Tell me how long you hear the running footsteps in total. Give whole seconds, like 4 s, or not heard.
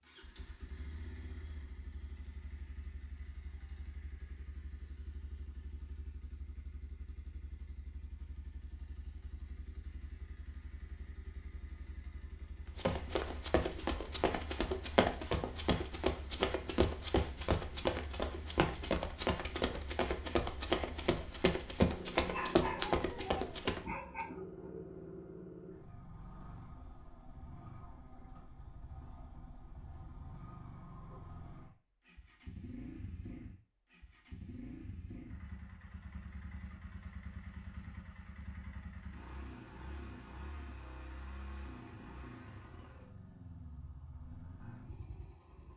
11 s.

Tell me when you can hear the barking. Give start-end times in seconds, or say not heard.
22.3-24.2.